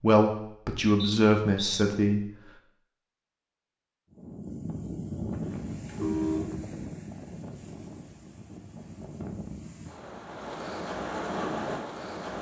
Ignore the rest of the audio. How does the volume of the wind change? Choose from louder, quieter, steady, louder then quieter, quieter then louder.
quieter then louder.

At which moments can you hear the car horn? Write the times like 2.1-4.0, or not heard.
5.7-6.6.